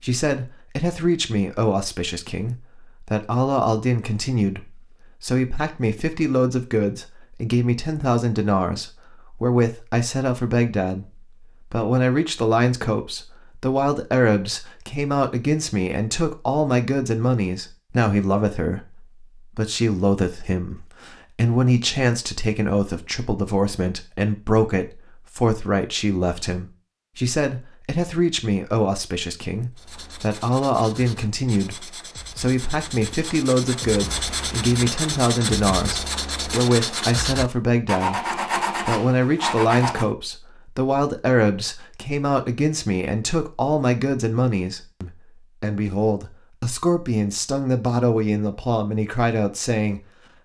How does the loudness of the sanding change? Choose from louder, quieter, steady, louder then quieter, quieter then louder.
louder.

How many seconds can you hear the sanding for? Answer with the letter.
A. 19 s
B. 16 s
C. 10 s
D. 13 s
C.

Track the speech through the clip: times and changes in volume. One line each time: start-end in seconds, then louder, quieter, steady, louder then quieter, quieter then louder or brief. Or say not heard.
0.0-50.4 steady.